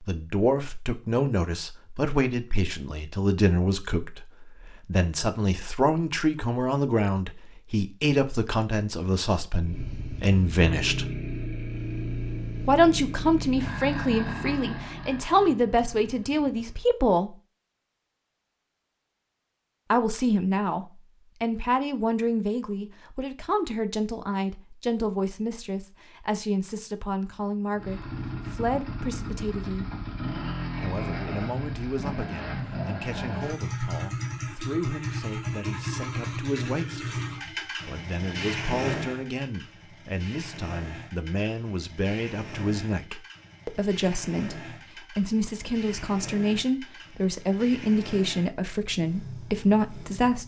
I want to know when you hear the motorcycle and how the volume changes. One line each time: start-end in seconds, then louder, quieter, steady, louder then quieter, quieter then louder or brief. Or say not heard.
9.6-16.8 quieter
27.8-50.4 quieter.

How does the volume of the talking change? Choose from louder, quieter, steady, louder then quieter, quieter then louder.
quieter then louder.